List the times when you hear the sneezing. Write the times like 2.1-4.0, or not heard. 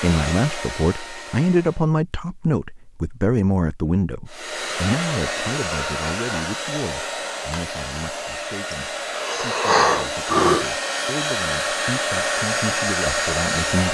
8.7-10.7.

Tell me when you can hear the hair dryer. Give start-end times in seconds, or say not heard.
0.0-1.9, 4.2-13.8.